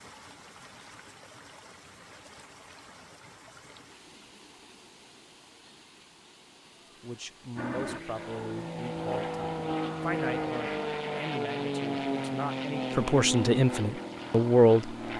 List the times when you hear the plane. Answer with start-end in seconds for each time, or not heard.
7.5-15.1.